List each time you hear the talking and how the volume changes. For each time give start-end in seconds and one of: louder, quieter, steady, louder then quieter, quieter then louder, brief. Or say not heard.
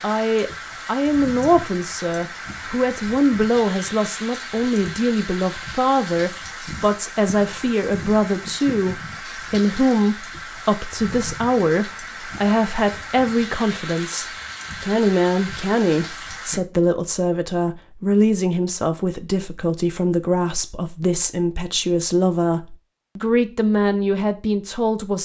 0.0-25.1 steady.